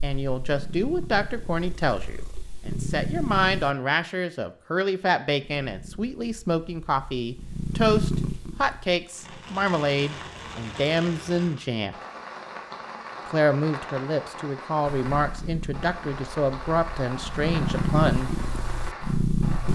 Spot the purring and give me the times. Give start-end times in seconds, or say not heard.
0.0-3.8, 5.5-9.4, 15.1-19.7.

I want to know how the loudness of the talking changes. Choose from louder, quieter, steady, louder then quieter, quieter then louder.
steady.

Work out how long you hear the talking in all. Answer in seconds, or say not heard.
17 s.